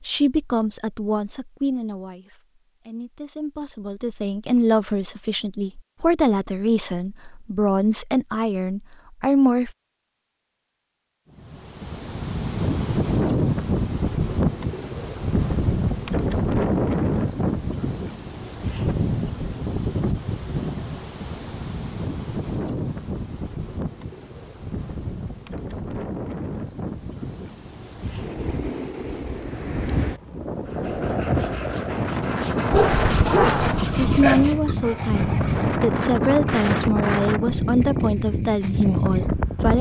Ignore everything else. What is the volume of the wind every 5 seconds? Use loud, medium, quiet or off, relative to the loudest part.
off, off, loud, loud, medium, medium, loud, loud.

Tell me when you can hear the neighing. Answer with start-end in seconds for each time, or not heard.
not heard.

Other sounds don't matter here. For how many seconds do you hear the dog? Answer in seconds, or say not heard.
2 s.